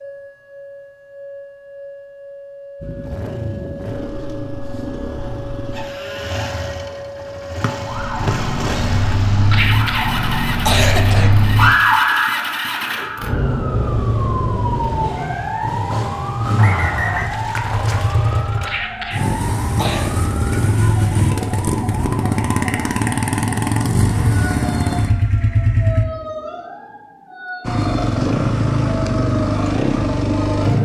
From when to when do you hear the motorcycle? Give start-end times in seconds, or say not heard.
2.8-26.1, 27.6-30.8.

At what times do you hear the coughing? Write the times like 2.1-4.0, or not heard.
9.5-11.3, 18.6-20.1.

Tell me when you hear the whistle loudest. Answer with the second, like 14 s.
17 s.